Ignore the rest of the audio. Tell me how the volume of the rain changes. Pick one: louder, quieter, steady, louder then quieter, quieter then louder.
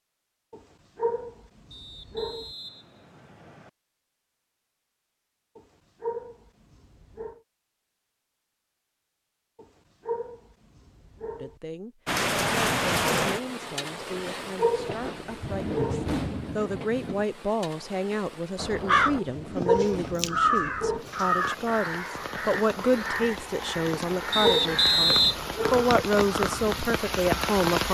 quieter then louder.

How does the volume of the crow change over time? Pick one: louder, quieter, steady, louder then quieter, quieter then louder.
quieter.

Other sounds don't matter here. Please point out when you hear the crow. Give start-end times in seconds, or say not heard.
18.6-27.6.